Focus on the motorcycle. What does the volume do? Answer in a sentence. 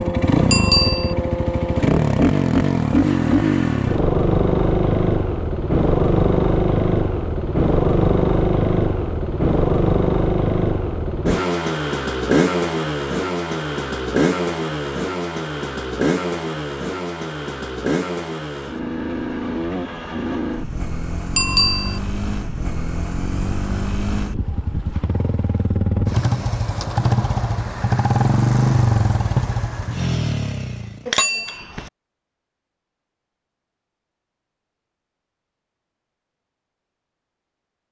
The loudness of the motorcycle goes down, then up.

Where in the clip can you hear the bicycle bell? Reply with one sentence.
The bicycle bell can be heard from 0.5 to 1.1 s, from 21.4 to 22.0 s and from 31.1 to 31.9 s.